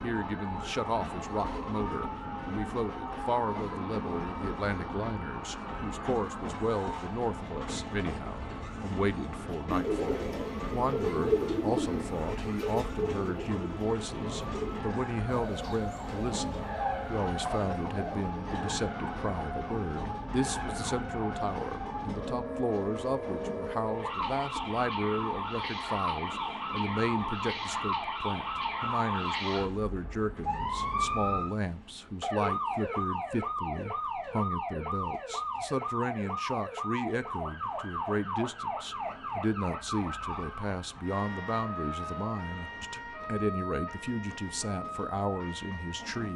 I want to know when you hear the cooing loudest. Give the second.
11 s.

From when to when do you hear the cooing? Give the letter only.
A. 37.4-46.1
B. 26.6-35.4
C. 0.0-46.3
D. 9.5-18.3
D.